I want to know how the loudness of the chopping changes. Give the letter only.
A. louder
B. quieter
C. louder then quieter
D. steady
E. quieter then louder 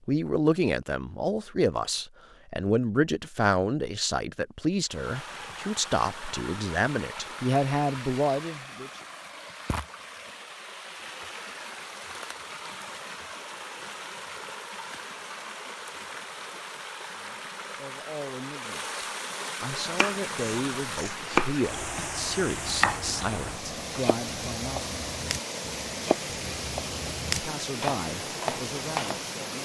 E.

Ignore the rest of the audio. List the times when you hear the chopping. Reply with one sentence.
You can hear the chopping from 19.8 to 29.2 s.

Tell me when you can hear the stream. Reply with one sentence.
You can hear the stream from 4.8 to 29.6 s.